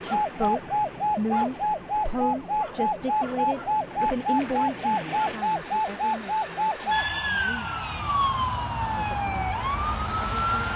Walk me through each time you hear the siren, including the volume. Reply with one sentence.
The siren can be heard from 0.0 to 10.7 s, at a steady volume.